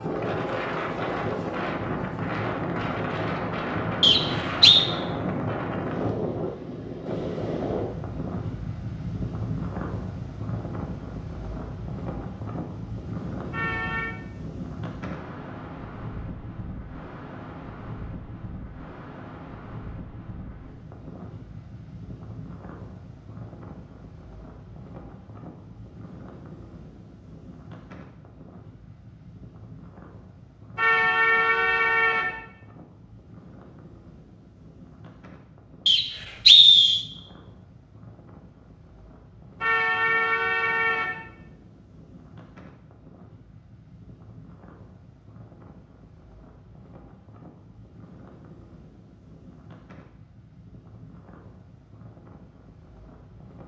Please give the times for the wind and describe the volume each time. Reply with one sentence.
The wind can be heard from 0.0 to 53.6 s, getting quieter.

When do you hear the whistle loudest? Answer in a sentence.
The loudest moment of the whistle is at 37 seconds.